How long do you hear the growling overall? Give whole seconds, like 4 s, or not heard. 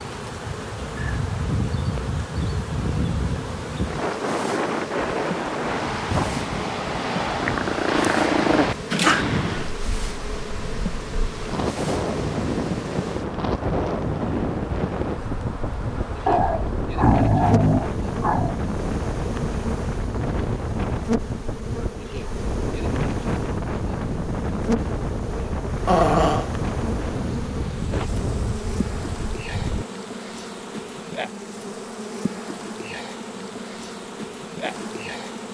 5 s.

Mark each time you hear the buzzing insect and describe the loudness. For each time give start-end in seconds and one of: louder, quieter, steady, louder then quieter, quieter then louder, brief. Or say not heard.
0.0-35.4 steady.